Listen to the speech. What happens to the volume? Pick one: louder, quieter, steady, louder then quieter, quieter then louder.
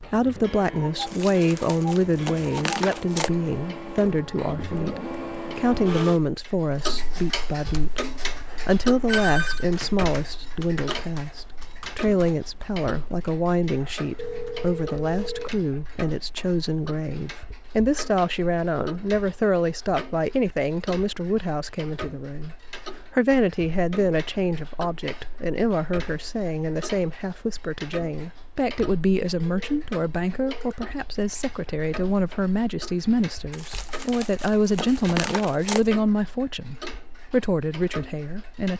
steady.